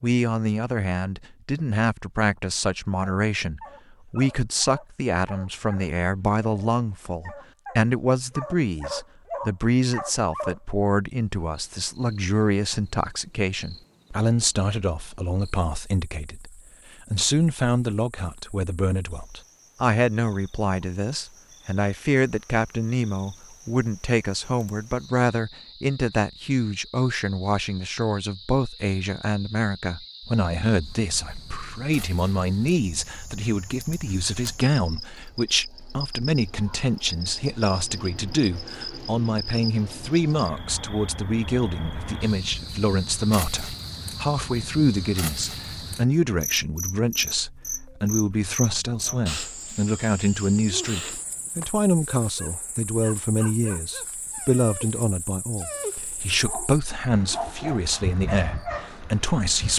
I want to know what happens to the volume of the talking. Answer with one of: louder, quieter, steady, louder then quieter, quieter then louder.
steady.